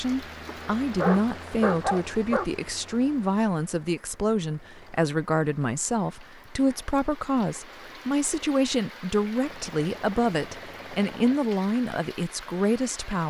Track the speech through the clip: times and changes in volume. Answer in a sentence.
You can hear the speech from 0.0 to 13.2 s, at a steady volume.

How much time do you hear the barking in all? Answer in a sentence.
You can hear the barking for 2 seconds altogether.